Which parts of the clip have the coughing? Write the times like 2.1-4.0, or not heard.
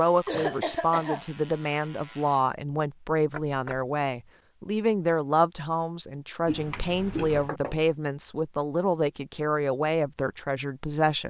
0.2-1.2, 6.5-7.5.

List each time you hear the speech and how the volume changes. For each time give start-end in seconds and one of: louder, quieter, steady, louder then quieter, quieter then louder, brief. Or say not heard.
0.0-11.2 steady.